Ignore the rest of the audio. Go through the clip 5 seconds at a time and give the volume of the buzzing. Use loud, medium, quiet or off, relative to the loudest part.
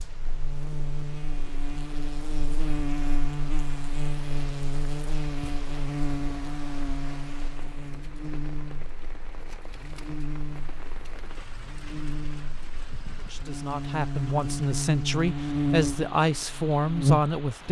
medium, medium, medium, loud.